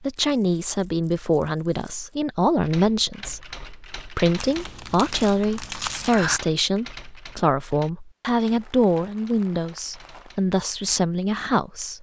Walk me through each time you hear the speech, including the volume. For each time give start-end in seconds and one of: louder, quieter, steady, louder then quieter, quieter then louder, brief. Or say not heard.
0.0-11.9 steady.